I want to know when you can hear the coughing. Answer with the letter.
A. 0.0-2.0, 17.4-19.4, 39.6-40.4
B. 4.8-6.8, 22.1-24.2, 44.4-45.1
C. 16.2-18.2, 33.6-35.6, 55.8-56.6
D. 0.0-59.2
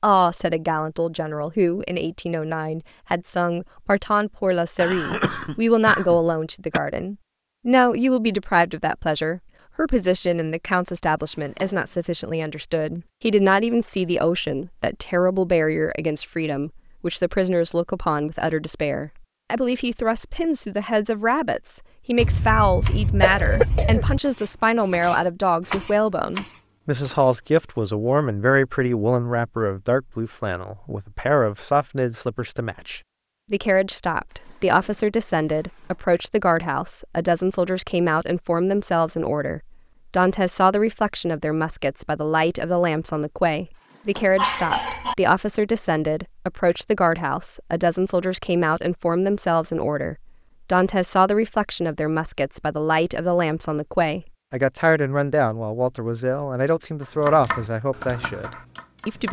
B.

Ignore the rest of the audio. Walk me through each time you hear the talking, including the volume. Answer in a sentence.
The talking can be heard from 0.0 to 59.2 s, at a steady volume.